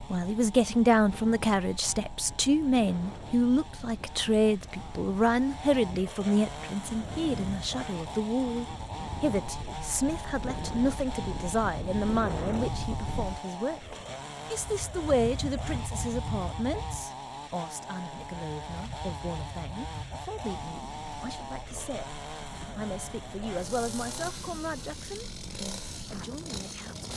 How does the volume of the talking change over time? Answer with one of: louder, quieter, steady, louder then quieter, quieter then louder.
quieter.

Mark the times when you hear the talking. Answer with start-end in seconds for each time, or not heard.
0.1-27.1.